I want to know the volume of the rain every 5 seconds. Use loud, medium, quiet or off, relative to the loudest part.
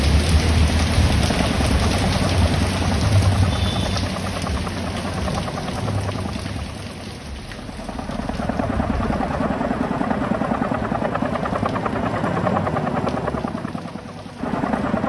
loud, medium, quiet.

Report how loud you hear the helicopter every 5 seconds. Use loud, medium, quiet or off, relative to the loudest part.
loud, medium, loud.